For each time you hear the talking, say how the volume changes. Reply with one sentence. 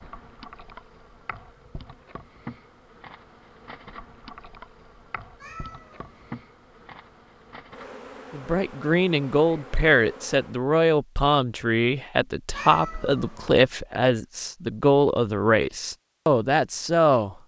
You can hear the talking from 8.3 to 17.4 s, at a steady volume.